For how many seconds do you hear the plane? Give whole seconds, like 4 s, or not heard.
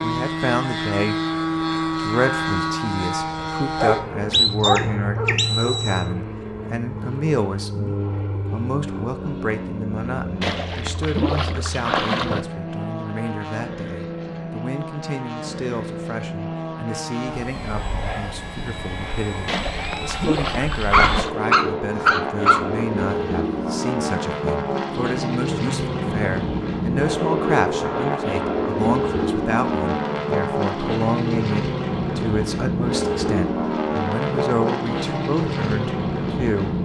37 s.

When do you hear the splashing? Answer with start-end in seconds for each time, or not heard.
10.4-12.4, 19.4-21.3.